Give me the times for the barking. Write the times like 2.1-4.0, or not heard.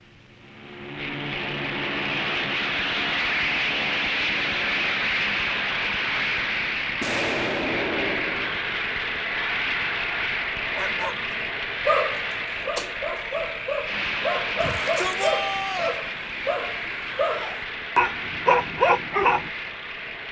10.8-19.5.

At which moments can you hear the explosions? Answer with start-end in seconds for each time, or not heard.
7.0-8.6.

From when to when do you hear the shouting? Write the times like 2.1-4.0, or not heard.
14.6-16.0.